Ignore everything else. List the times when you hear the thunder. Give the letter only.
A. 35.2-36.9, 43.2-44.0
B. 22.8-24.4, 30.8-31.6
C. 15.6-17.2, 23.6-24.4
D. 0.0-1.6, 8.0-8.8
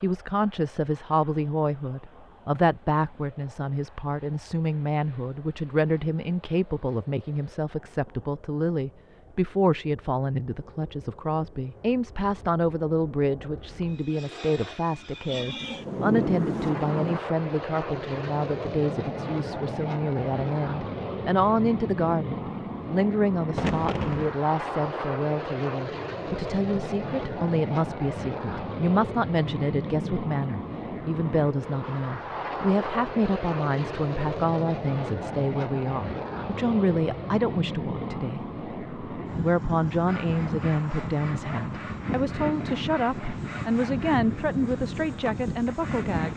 C.